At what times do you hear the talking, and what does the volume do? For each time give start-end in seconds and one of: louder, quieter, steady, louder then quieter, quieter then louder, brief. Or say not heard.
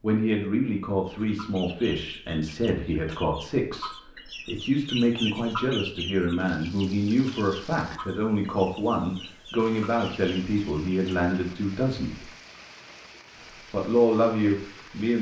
0.0-12.2 steady
13.7-15.1 brief.